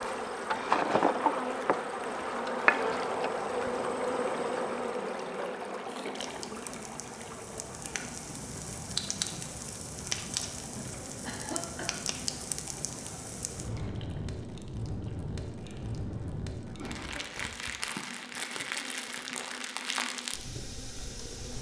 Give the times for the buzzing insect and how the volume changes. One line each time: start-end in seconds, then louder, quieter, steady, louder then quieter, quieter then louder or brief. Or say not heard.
0.0-21.5 quieter.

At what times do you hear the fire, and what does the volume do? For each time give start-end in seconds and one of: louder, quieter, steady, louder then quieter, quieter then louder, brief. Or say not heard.
6.2-21.5 steady.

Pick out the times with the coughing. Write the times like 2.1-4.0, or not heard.
0.5-1.1, 10.8-12.0, 16.7-17.4.